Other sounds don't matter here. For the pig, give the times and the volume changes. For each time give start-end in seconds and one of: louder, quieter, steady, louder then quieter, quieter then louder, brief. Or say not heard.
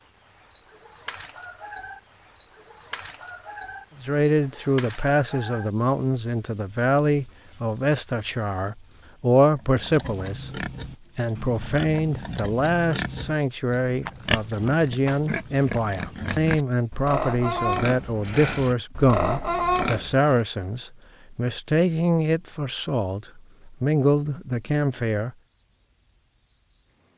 9.5-20.3 louder.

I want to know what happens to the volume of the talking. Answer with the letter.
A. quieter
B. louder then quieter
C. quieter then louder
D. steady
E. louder
D.